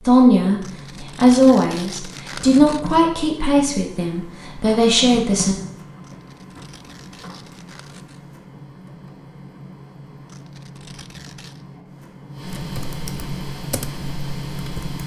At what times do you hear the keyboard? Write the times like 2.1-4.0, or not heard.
12.4-15.0.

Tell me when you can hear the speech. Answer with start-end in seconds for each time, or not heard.
0.1-5.5.